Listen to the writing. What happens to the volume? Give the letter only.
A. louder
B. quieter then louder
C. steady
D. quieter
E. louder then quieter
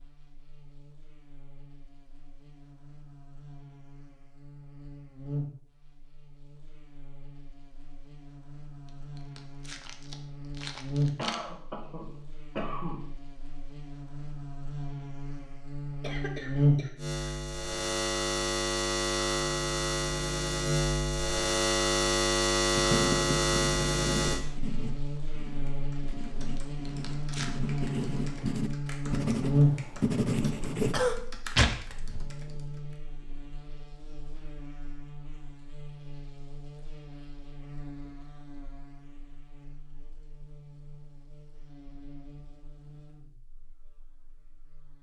B.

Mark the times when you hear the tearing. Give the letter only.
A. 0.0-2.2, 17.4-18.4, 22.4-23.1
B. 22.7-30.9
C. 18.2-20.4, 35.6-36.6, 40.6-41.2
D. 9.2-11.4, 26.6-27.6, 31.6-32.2
D.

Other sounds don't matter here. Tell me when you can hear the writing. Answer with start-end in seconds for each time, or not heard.
22.7-30.9.